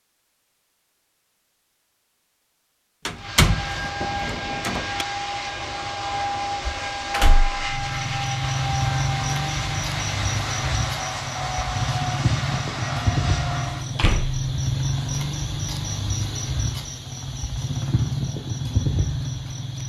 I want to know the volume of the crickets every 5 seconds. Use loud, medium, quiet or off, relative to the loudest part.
off, loud, loud, loud.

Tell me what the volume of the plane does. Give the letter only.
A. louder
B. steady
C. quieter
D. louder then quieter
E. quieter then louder
B.